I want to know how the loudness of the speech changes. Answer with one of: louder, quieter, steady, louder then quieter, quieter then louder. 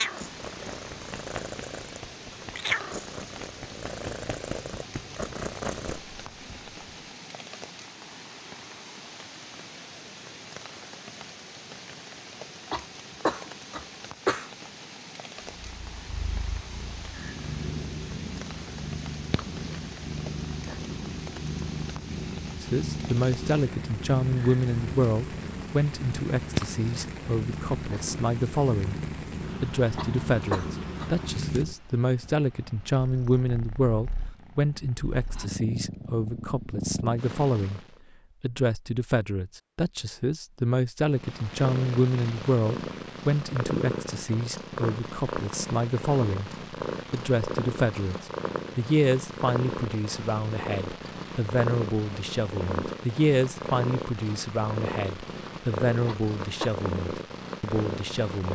steady.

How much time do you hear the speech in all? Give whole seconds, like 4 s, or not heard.
34 s.